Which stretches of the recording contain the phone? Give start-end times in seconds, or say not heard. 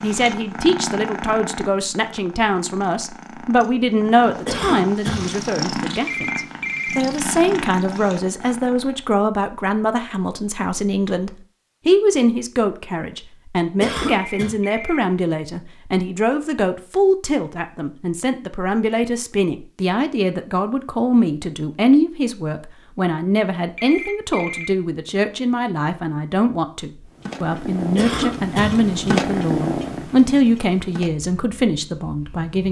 6.0-7.0, 14.1-15.0, 23.8-24.7.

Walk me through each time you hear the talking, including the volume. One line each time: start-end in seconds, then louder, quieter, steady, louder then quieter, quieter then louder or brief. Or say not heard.
0.0-32.6 steady.